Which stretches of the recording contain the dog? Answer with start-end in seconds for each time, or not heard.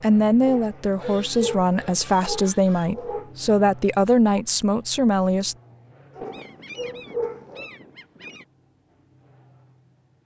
0.4-3.3, 6.2-7.7.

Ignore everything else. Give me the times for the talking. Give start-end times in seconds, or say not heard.
0.0-5.5.